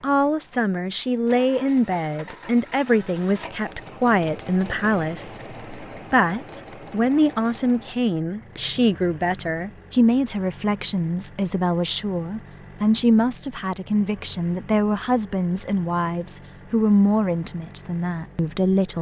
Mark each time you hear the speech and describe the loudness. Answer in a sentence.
You can hear the speech from 0.0 to 18.9 s, at a steady volume.